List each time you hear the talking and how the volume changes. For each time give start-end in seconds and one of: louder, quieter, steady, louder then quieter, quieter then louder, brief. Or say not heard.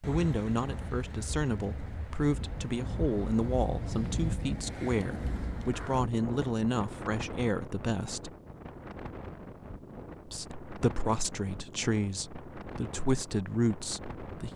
0.1-8.3 steady
10.2-14.5 quieter then louder.